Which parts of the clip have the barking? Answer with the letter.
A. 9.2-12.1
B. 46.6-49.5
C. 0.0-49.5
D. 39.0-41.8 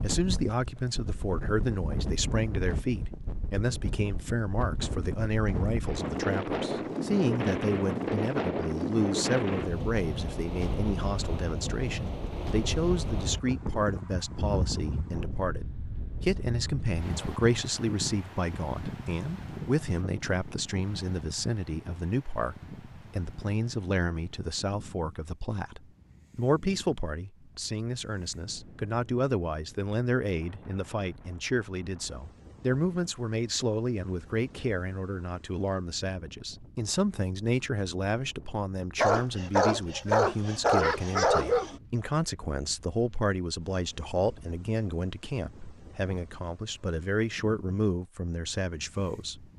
D.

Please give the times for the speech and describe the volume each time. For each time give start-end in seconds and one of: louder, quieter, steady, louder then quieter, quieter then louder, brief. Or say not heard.
0.0-49.5 steady.